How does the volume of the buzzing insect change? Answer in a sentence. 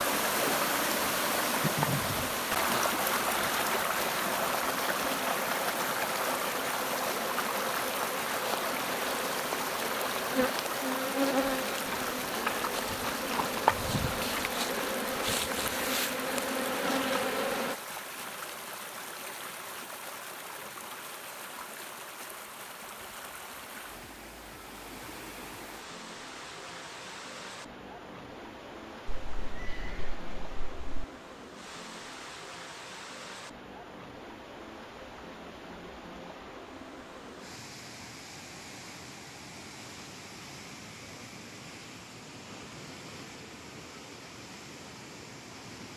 The volume of the buzzing insect goes up.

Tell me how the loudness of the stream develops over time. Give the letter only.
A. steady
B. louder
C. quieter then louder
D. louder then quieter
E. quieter
E.